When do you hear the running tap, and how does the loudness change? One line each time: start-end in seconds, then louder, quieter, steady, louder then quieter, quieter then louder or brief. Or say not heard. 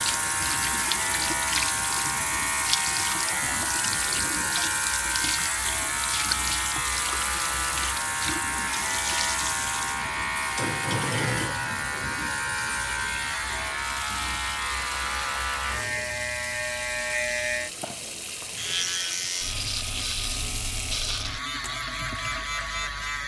0.0-23.2 quieter.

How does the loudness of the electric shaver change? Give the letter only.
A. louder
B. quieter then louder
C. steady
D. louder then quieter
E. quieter
C.